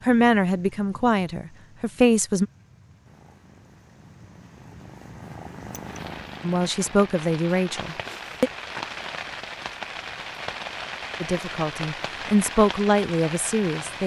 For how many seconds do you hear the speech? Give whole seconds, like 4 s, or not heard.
7 s.